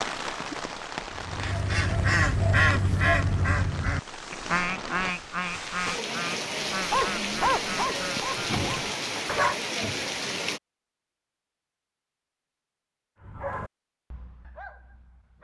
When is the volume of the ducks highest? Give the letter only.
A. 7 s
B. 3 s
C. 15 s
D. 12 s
B.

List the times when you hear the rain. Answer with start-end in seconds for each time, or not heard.
0.0-10.6.